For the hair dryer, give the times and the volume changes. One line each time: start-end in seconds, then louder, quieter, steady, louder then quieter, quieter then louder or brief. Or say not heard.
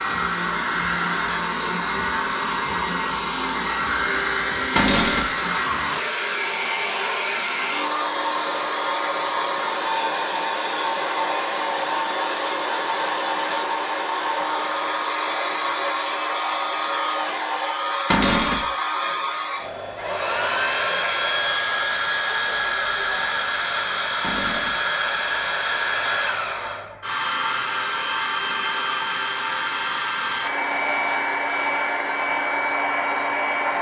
0.0-33.7 steady.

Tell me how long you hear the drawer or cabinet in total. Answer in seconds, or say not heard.
2 s.